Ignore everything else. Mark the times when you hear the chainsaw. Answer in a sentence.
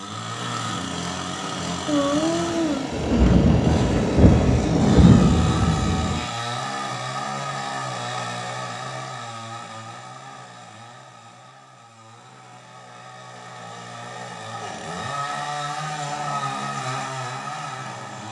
You can hear the chainsaw from 0.0 to 18.2 s.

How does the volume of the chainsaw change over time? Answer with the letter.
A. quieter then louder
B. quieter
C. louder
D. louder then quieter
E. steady
A.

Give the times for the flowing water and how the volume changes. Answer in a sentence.
The flowing water can't be heard in this clip.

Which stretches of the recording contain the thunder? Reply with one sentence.
You can hear the thunder from 1.9 to 6.2 s.